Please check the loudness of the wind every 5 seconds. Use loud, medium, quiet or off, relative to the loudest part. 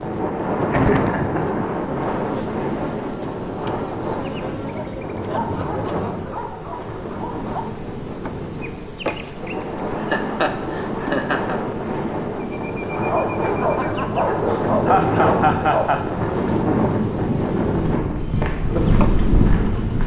loud, medium, loud, loud.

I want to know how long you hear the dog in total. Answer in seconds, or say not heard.
6 s.